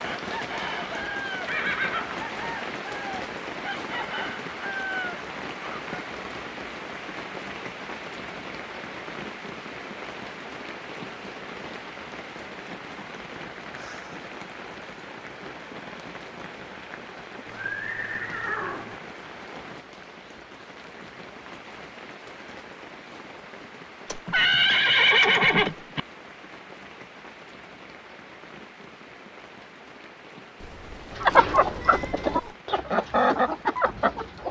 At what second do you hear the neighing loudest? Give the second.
25 s.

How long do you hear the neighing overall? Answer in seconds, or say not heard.
4 s.